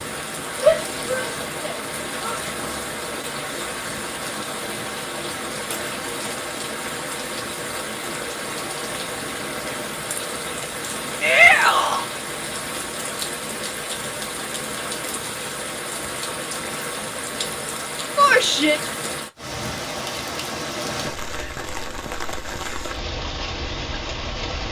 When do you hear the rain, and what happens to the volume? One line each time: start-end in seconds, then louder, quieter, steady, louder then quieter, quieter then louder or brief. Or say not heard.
0.0-24.6 steady.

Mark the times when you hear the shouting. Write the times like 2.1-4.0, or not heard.
0.6-2.4, 11.2-12.1, 18.1-18.8.